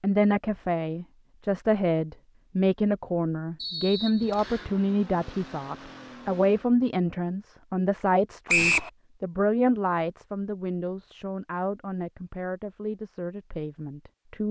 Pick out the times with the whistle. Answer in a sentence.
You can hear the whistle from 3.6 to 4.7 s and from 8.4 to 8.9 s.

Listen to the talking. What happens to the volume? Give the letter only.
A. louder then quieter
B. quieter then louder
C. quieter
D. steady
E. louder
C.